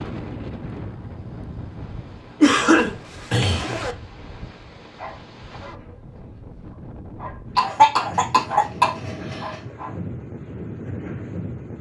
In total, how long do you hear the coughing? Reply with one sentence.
The coughing can be heard for 3 seconds in total.